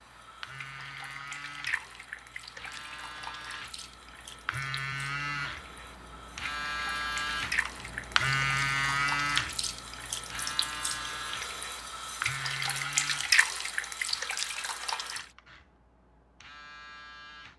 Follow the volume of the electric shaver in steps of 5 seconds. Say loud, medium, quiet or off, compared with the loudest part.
medium, loud, medium, quiet.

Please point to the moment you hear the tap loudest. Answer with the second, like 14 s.
13 s.